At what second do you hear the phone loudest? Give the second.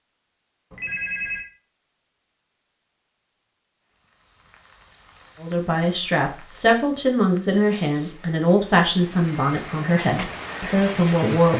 1 s.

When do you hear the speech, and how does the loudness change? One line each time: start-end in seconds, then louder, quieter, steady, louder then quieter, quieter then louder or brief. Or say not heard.
5.4-11.5 steady.